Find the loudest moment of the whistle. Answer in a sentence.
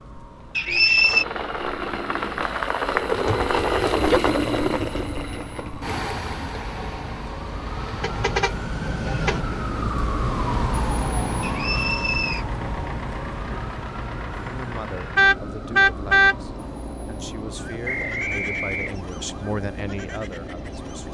The volume of the whistle peaks at 1 second.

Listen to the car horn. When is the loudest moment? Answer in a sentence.
The loudest moment of the car horn is at 16 seconds.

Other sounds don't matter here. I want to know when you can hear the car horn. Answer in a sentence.
You can hear the car horn from 3.2 to 4.2 s, from 8.0 to 9.4 s and from 15.2 to 16.4 s.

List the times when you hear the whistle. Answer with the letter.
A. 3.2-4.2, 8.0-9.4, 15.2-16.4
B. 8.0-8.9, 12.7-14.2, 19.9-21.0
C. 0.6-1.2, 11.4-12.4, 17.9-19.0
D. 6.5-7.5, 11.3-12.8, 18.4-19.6
C.